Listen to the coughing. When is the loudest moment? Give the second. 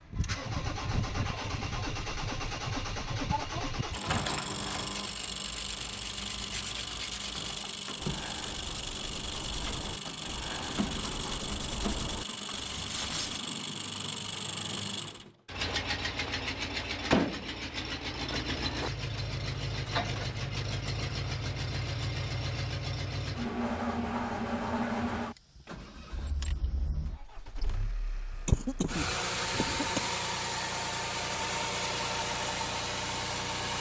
29 s.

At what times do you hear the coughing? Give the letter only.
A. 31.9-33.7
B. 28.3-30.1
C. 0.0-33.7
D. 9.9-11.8
B.